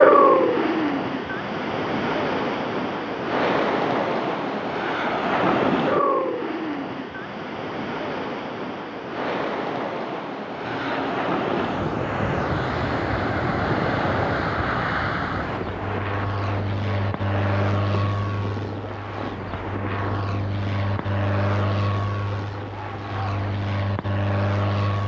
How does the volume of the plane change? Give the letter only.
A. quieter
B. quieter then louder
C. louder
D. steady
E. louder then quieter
D.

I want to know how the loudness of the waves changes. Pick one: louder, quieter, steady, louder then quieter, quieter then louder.
quieter.